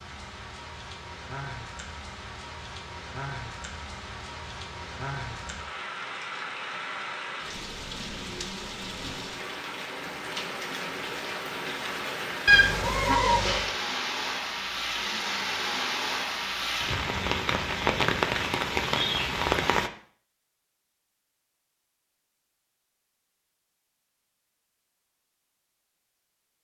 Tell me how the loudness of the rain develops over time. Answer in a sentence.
The loudness of the rain goes up.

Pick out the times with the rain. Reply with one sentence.
The rain can be heard from 0.0 to 19.9 s.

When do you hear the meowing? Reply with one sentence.
The meowing can be heard from 12.4 to 13.7 s.